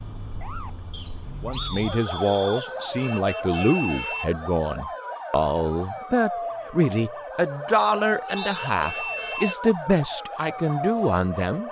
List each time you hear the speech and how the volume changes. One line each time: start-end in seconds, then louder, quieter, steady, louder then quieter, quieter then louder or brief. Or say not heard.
1.4-11.6 steady.